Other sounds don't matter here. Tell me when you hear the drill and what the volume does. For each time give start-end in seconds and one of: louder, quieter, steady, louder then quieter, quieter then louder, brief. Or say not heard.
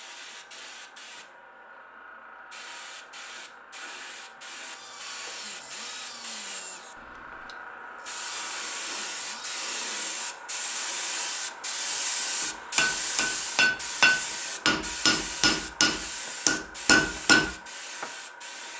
4.6-10.3 quieter then louder.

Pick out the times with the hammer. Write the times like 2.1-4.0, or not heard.
11.9-17.5.